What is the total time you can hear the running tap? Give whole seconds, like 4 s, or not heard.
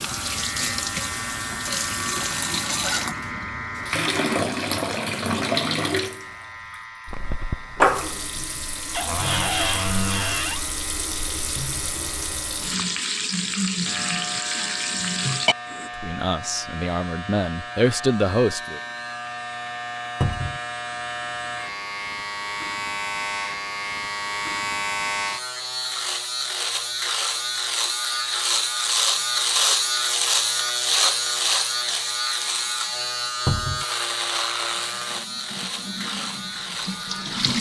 19 s.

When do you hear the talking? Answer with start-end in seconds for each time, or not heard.
15.9-18.8.